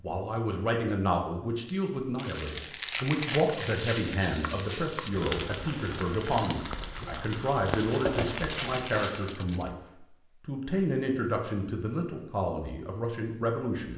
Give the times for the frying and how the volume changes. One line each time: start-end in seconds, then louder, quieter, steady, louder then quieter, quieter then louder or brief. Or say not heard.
3.3-9.3 steady.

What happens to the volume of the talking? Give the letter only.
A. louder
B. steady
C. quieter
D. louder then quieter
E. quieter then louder
B.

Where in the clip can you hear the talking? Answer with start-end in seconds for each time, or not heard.
0.0-9.8, 10.4-13.9.